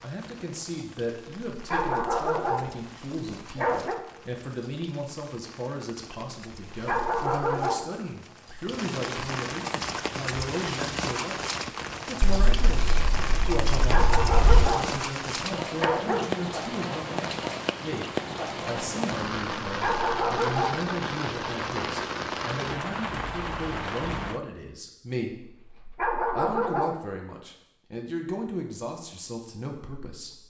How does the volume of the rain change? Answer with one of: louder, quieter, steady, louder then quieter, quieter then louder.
louder.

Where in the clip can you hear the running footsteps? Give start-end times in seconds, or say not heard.
not heard.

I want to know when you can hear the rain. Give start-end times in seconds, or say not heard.
0.0-24.4.